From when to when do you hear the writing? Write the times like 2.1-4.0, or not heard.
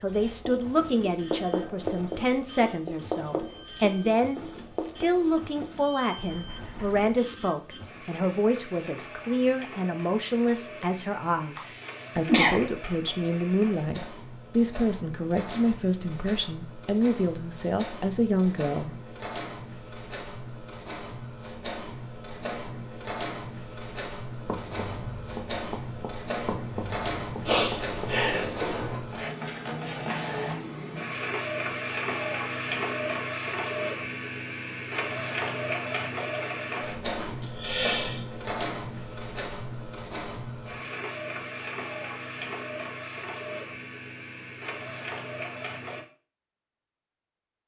0.1-7.2, 24.4-27.9.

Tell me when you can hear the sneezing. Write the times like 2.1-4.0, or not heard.
11.6-12.6, 27.4-29.0, 37.2-38.2.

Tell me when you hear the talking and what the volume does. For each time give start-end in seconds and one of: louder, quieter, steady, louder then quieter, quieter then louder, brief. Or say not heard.
0.0-18.9 steady.